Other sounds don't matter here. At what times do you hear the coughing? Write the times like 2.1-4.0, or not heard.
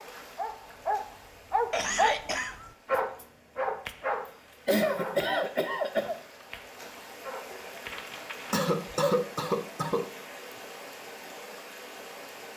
1.7-2.5, 4.7-6.2, 8.5-10.1.